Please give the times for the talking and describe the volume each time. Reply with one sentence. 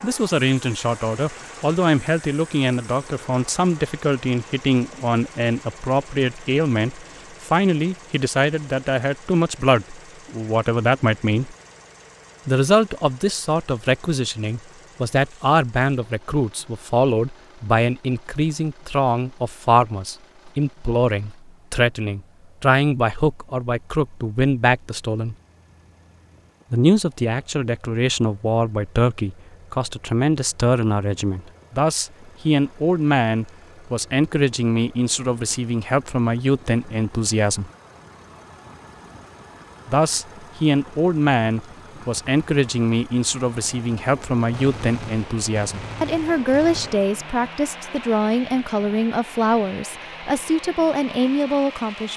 The talking can be heard from 0.0 to 11.6 s, at a steady volume; from 12.4 to 25.4 s, at a steady volume; from 26.7 to 37.7 s, at a steady volume; and from 39.9 to 52.1 s, at a steady volume.